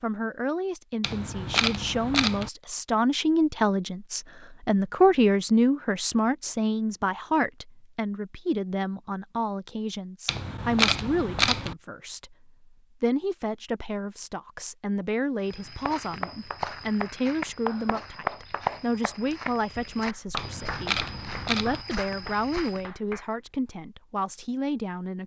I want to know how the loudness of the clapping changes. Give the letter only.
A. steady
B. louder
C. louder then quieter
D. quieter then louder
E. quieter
E.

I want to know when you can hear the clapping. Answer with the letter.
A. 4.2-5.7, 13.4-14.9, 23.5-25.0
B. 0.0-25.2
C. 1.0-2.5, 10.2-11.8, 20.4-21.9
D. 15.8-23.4
D.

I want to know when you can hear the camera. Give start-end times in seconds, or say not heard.
1.0-2.5, 10.2-11.8, 20.4-21.9.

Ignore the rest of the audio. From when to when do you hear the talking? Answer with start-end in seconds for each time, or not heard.
0.0-25.2.